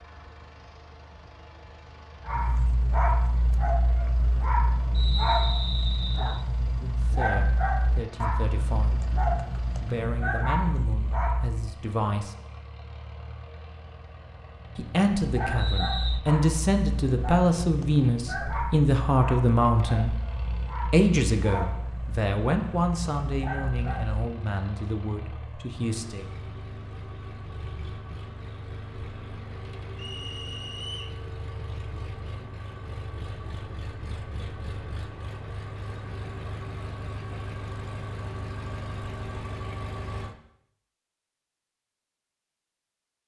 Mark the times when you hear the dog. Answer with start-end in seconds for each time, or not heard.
2.2-11.7, 15.2-24.2.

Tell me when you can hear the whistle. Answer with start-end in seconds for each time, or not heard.
4.9-6.5, 15.6-16.2, 29.9-31.2.